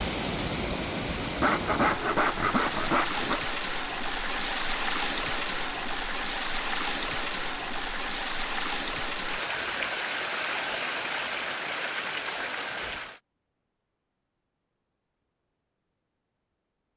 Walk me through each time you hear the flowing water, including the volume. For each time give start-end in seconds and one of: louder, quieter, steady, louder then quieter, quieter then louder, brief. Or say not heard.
0.0-13.2 steady.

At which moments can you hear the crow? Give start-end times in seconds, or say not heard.
not heard.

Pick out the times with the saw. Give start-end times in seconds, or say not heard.
1.4-3.4.